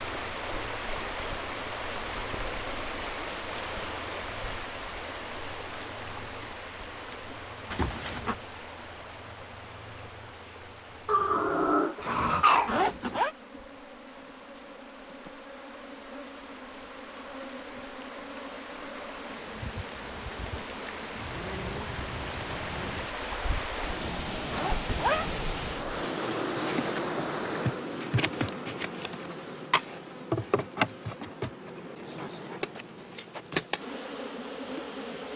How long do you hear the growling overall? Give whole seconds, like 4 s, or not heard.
2 s.